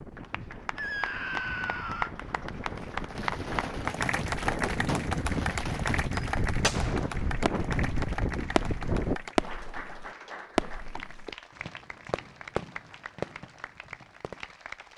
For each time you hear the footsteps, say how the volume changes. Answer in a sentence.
The footsteps can't be heard in this clip.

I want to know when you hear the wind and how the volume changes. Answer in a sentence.
The wind can be heard from 0.0 to 9.2 s, getting louder.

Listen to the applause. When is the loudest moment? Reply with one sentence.
The volume of the applause peaks at 4 seconds.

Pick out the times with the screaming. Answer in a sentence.
The screaming can be heard from 0.8 to 2.1 s.